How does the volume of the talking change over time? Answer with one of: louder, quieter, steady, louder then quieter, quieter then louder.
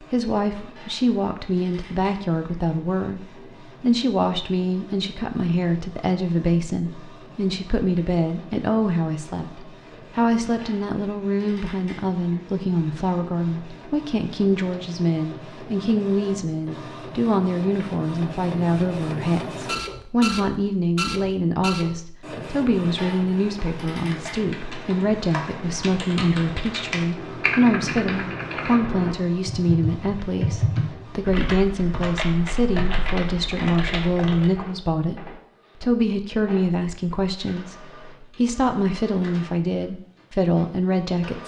steady.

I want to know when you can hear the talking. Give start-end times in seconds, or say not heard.
0.0-41.4.